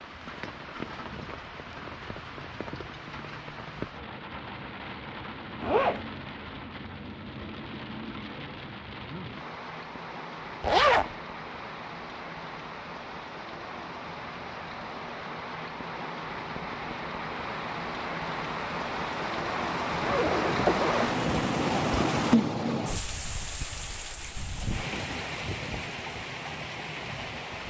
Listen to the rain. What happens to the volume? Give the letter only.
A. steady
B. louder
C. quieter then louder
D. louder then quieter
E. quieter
B.